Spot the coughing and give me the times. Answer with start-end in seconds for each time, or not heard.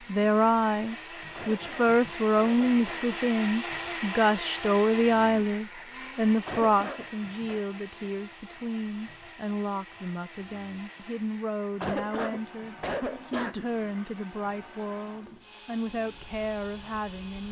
1.3-3.2, 6.5-7.7, 11.8-13.7.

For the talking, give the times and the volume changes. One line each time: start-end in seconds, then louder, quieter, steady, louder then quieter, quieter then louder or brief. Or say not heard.
0.1-17.4 quieter.